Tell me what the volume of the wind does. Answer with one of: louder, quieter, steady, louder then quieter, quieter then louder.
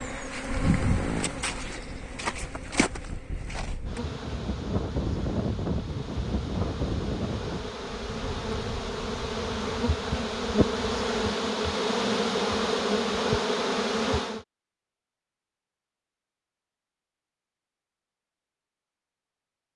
louder then quieter.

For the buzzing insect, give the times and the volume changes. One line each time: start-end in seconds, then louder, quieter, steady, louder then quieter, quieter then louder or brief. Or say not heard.
0.0-14.4 quieter then louder.